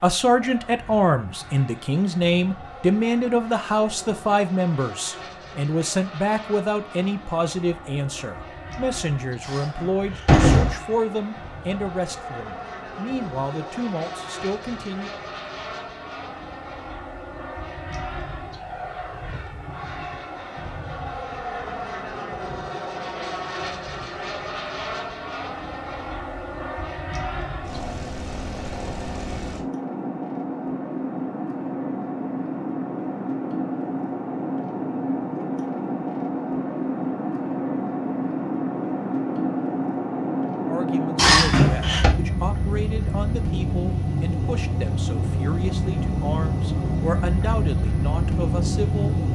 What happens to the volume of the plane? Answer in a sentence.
The loudness of the plane goes up.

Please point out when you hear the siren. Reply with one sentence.
The siren can't be heard in this clip.